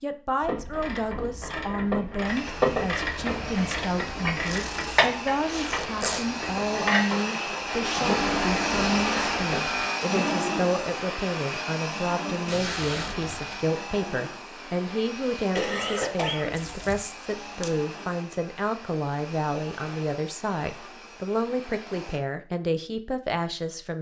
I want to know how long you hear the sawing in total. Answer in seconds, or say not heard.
not heard.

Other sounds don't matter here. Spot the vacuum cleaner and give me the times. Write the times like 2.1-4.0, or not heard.
2.2-22.2.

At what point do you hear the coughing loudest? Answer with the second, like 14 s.
16 s.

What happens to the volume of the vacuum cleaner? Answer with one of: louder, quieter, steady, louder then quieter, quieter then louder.
louder then quieter.